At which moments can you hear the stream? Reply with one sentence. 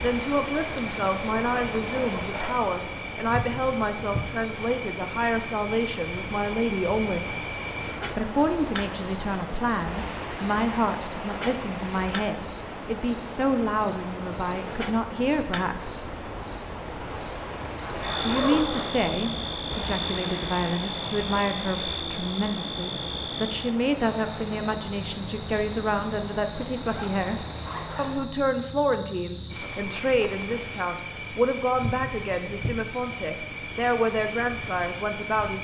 The stream can be heard from 0.0 to 28.4 s.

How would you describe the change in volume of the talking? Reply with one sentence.
The volume of the talking stays about the same.